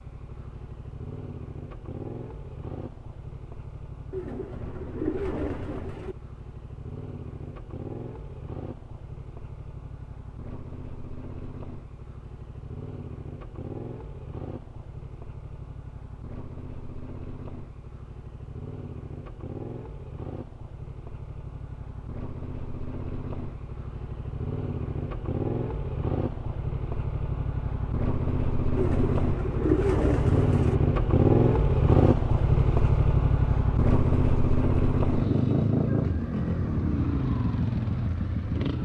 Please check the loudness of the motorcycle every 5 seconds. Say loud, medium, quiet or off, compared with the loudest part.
quiet, quiet, quiet, quiet, quiet, medium, loud, loud.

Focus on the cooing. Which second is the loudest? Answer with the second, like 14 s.
30 s.